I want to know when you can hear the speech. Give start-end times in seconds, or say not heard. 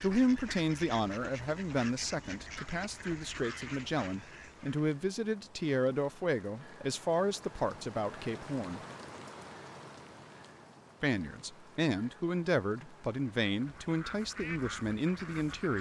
0.0-8.8, 11.0-15.7.